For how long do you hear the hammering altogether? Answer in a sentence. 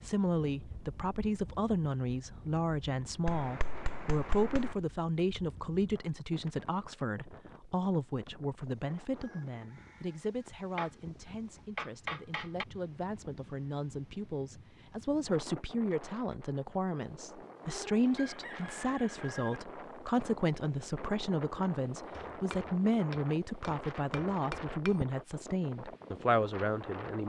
You can hear the hammering for 6 seconds altogether.